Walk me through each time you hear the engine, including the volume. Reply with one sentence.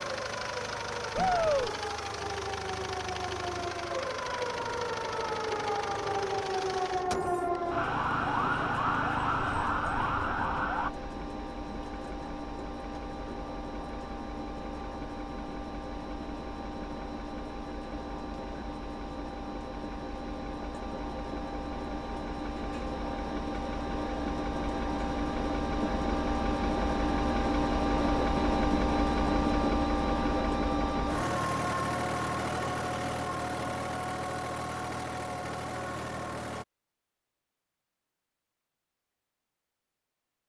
You can hear the engine from 0.0 to 36.6 s, getting louder.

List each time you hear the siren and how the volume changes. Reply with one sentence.
The siren can be heard from 0.0 to 10.9 s, getting louder.